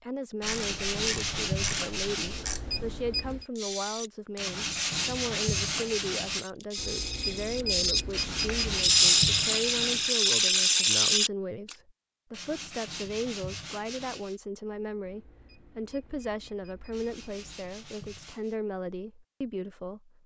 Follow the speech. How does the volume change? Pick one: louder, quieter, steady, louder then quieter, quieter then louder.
steady.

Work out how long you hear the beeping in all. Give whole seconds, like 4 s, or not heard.
6 s.